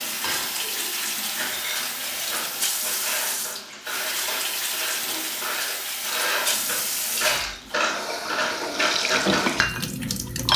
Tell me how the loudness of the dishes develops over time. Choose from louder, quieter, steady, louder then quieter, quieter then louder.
louder.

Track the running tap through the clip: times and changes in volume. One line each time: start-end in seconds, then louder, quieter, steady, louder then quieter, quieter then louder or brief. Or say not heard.
0.0-10.5 steady.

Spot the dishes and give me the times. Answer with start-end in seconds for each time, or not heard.
0.0-10.5.